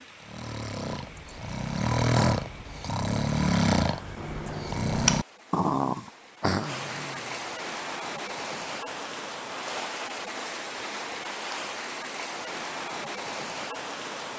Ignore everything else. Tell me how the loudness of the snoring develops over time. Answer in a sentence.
The loudness of the snoring goes up, then down.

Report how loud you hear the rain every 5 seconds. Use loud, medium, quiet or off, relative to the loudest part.
quiet, loud, loud.